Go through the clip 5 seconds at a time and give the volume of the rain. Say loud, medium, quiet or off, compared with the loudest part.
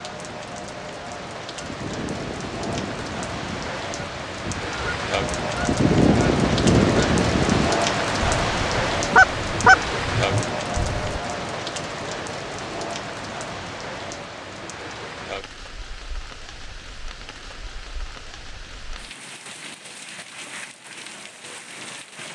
medium, loud, medium, quiet, quiet.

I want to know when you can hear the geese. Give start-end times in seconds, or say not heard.
1.6-11.0.